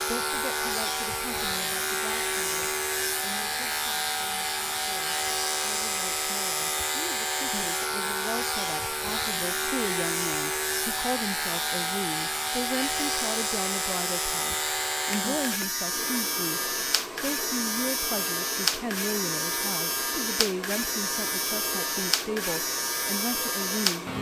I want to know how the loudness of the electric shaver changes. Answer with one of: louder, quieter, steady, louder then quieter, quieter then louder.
steady.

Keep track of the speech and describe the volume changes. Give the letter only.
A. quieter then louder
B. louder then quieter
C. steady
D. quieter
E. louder
E.